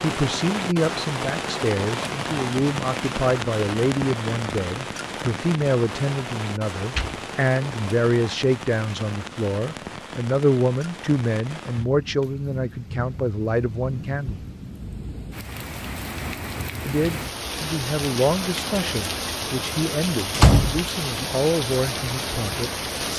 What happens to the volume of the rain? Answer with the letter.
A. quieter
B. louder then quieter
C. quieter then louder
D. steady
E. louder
C.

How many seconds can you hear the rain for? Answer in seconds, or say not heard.
23 s.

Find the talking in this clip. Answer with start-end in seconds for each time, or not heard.
0.0-14.4, 16.9-23.1.